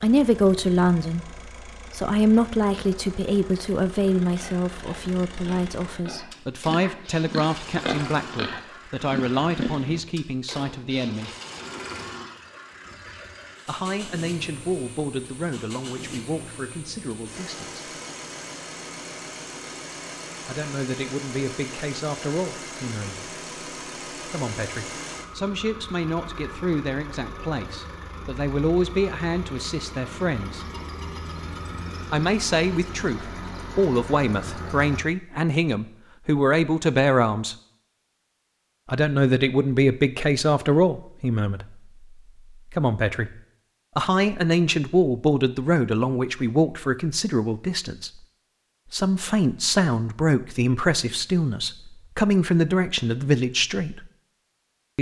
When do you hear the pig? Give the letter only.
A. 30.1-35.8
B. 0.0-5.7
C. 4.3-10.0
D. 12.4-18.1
C.